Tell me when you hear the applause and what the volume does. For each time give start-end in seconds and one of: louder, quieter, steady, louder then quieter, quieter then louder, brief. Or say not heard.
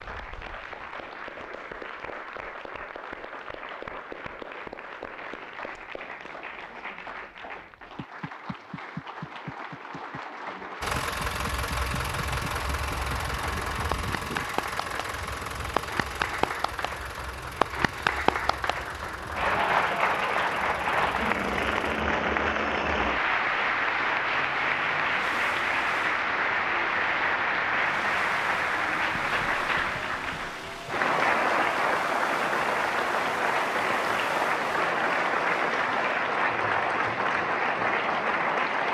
0.0-38.9 louder.